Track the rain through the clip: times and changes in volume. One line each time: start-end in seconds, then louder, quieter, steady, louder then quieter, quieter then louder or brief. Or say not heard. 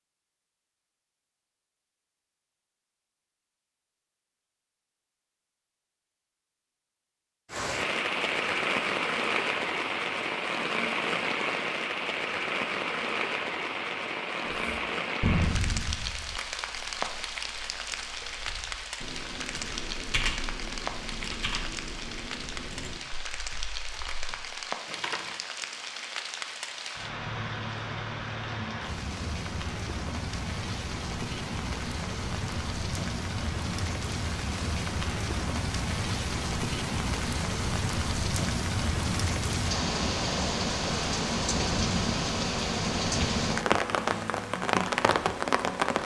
7.5-46.0 quieter then louder.